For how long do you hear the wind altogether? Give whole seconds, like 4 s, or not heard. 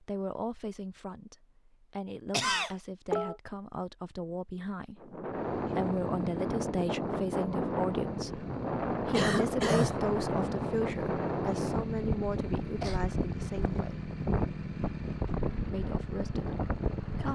12 s.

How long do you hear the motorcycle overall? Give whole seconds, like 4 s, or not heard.
12 s.